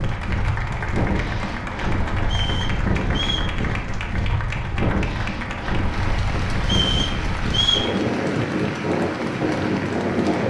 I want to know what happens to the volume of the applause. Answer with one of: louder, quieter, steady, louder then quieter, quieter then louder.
steady.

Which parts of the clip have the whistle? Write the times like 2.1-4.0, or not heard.
2.2-3.5, 6.6-7.9.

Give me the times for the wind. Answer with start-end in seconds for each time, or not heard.
0.0-10.4.